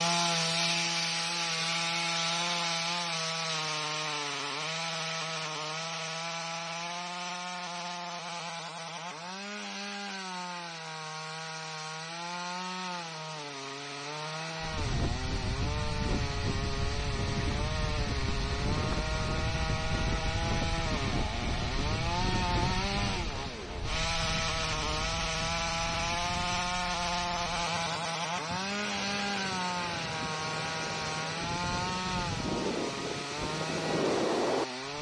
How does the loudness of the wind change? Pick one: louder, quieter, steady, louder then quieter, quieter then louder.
quieter then louder.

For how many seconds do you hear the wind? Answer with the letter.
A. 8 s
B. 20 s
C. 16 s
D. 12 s
B.